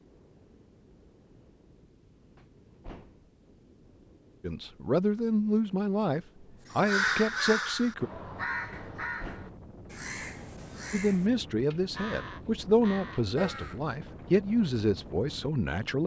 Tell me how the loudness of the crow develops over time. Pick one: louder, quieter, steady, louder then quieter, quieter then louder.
quieter.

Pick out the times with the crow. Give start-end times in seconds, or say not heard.
6.7-14.2.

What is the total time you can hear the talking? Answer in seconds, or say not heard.
9 s.